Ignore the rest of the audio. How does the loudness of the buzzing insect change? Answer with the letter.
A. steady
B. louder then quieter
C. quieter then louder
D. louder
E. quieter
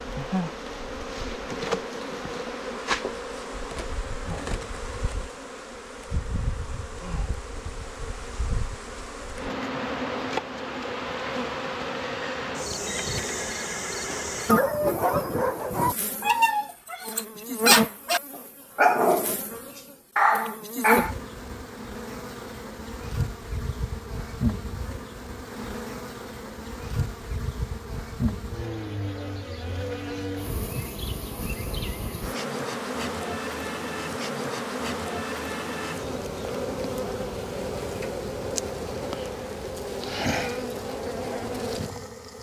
A.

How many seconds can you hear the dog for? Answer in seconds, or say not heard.
7 s.